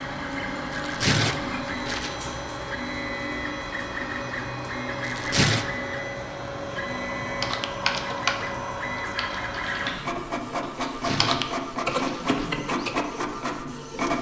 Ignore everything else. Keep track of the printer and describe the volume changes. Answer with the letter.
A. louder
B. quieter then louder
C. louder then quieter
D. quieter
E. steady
E.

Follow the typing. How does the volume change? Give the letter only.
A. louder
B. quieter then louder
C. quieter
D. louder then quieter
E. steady
B.